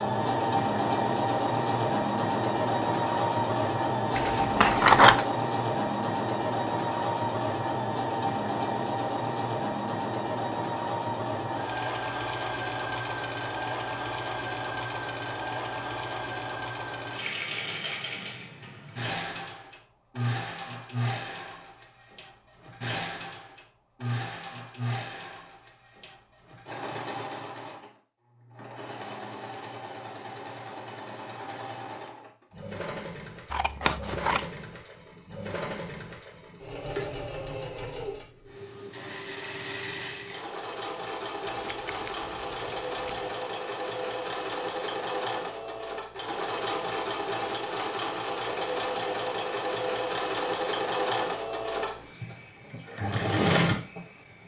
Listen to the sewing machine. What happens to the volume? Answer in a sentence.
The loudness of the sewing machine goes down, then up.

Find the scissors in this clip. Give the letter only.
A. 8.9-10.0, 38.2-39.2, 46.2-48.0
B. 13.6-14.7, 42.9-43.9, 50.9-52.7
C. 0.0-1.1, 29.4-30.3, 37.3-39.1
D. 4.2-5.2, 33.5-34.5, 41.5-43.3
D.